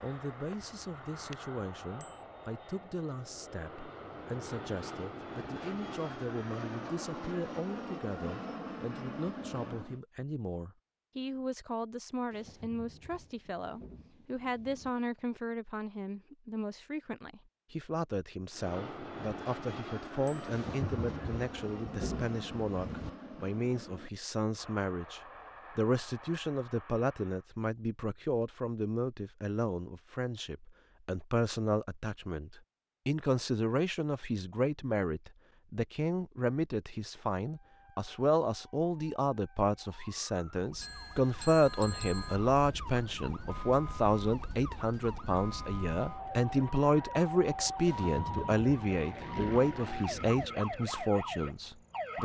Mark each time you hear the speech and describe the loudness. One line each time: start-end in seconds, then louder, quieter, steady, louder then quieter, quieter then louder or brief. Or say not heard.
0.0-52.2 louder.